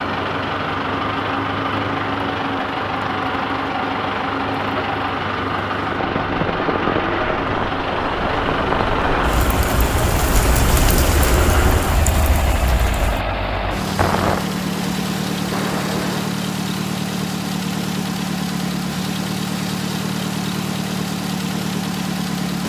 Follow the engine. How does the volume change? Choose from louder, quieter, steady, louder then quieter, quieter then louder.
steady.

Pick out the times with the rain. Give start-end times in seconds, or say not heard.
0.0-16.4.